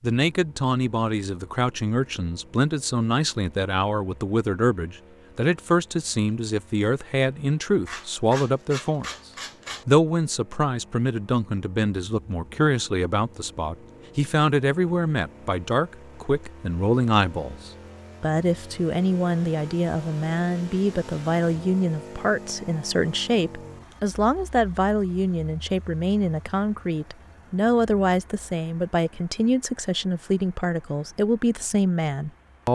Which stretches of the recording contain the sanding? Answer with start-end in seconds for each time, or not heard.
7.8-9.8.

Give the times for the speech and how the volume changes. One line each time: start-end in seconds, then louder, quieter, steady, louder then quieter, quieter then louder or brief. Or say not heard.
0.0-9.1 steady
9.7-32.6 steady.